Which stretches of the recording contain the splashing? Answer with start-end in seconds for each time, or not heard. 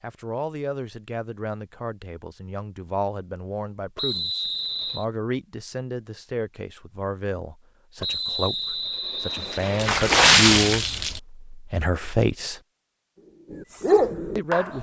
9.8-11.2.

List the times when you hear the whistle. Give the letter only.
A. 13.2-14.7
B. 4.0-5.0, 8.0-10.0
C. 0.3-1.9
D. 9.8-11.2
B.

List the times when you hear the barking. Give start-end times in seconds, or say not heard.
13.2-14.7.